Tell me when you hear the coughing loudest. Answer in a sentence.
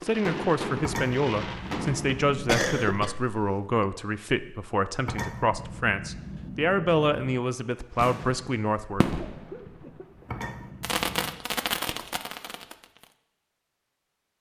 The loudest moment of the coughing is at 3 seconds.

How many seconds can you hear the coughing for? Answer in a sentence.
You can hear the coughing for 3 seconds altogether.